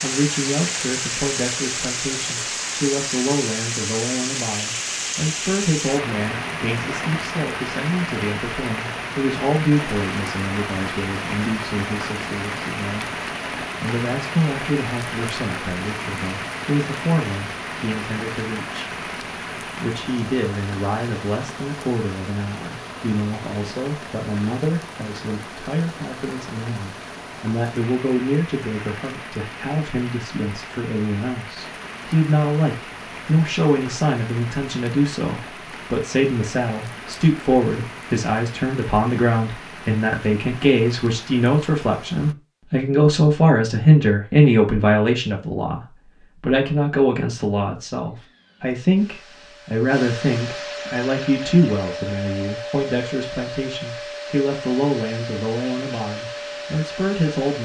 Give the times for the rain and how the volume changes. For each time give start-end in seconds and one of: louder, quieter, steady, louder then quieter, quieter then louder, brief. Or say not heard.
0.0-42.4 quieter.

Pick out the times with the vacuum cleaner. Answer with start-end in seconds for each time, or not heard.
48.0-57.6.